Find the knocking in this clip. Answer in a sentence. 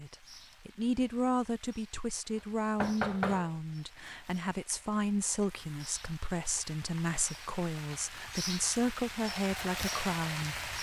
You can hear the knocking from 2.4 to 3.5 s.